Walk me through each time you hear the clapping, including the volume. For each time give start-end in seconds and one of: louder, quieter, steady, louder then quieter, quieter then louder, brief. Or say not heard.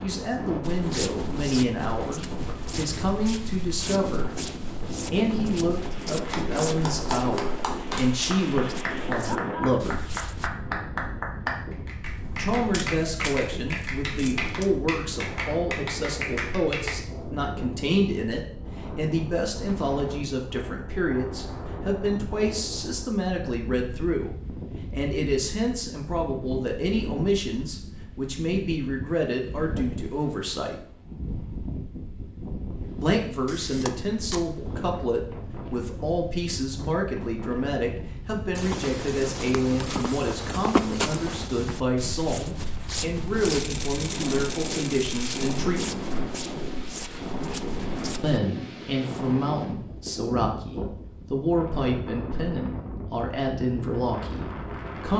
6.2-16.9 steady.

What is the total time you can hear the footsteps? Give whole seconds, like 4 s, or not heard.
20 s.